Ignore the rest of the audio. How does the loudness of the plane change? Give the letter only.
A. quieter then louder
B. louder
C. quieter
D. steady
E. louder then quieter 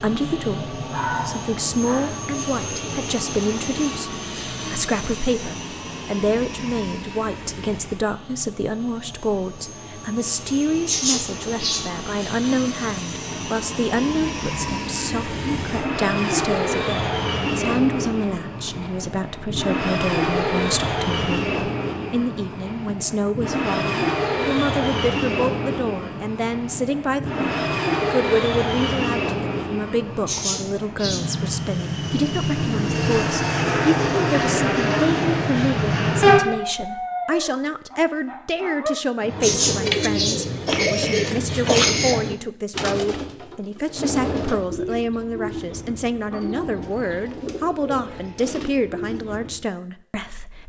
B.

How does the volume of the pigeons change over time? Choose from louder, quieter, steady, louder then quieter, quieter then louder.
quieter.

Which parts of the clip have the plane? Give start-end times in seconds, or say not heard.
0.0-36.4.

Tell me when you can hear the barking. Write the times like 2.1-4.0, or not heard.
0.9-2.1, 36.2-39.0.